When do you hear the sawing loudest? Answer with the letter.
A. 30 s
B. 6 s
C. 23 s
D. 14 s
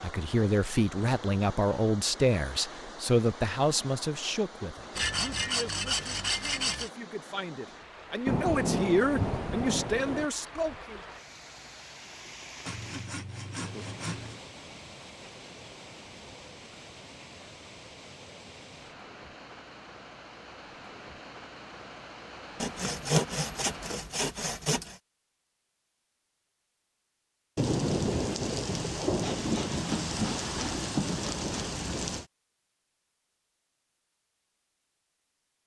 C.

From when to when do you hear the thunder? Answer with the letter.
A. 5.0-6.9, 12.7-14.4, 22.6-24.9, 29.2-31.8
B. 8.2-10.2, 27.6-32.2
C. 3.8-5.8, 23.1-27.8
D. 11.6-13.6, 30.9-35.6
B.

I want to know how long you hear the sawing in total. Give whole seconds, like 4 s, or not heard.
9 s.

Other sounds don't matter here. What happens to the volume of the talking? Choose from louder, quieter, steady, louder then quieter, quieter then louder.
quieter then louder.